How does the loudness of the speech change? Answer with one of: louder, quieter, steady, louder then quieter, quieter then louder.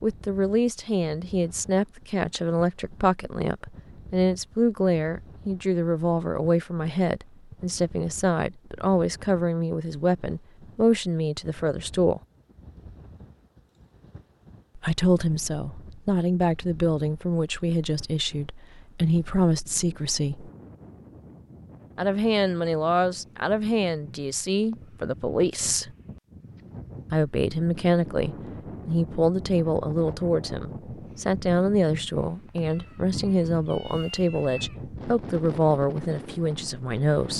steady.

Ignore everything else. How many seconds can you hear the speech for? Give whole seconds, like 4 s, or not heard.
32 s.